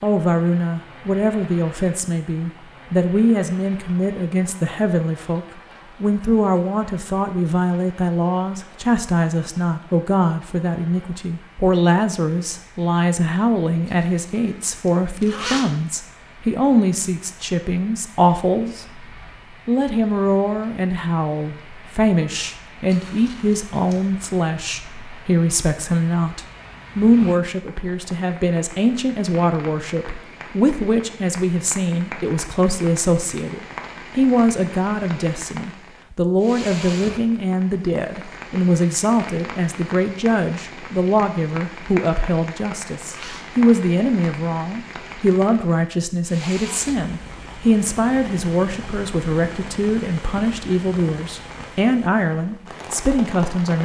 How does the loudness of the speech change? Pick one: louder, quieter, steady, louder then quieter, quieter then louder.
steady.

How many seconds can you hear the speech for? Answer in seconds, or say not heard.
53 s.